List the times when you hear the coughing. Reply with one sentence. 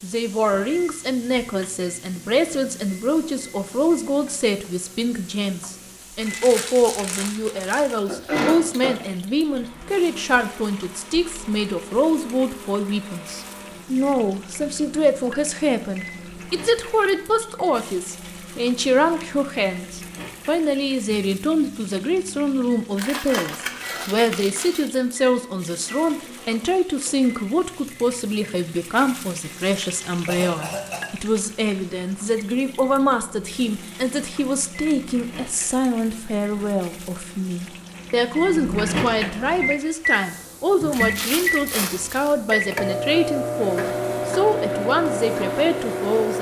The coughing can be heard from 7.8 to 8.9 s and from 30.2 to 31.1 s.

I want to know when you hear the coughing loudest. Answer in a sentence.
The volume of the coughing peaks at 8 seconds.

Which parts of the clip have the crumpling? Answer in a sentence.
You can hear the crumpling from 6.2 to 8.0 s, from 22.9 to 24.9 s and from 40.8 to 42.4 s.